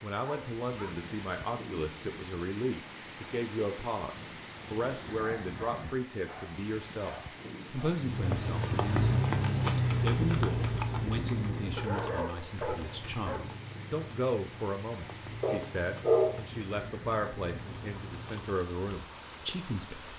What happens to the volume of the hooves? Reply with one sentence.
The volume of the hooves goes down.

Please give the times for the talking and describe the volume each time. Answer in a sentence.
The talking can be heard from 0.0 to 20.1 s, at a steady volume.